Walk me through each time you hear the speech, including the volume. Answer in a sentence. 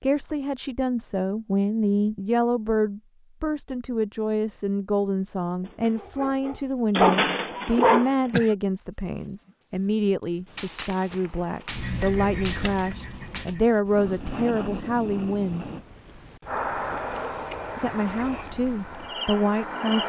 The speech can be heard from 0.0 to 15.7 s, at a steady volume; and briefly from 17.8 to 20.0 s.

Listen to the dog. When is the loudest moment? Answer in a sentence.
The volume of the dog peaks at 7 seconds.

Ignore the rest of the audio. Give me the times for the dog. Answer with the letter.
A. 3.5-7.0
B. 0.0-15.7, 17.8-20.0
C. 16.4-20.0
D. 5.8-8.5
D.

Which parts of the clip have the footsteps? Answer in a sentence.
You can't hear the footsteps here.